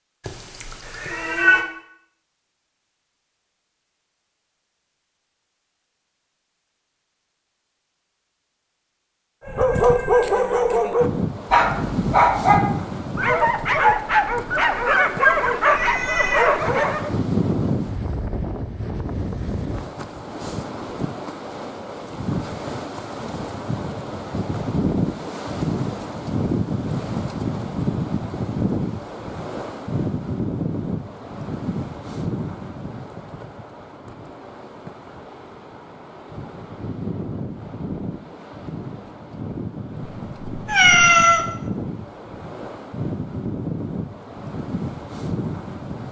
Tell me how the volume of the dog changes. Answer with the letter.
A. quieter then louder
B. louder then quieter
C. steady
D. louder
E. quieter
C.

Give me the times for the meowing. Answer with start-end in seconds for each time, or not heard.
0.2-1.6, 15.7-16.6, 40.5-41.5.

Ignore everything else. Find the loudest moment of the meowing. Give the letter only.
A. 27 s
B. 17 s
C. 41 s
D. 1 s
C.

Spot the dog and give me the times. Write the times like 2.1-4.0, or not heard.
9.4-17.1.